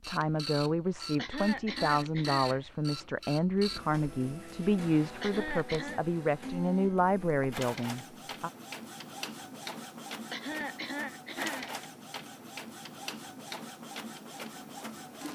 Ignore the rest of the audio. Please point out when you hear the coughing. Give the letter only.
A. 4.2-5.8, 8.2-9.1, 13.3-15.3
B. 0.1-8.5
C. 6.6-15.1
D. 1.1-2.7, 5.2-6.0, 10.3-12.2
D.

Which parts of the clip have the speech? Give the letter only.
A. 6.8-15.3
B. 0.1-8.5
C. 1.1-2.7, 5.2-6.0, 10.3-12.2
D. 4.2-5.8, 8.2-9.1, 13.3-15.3
B.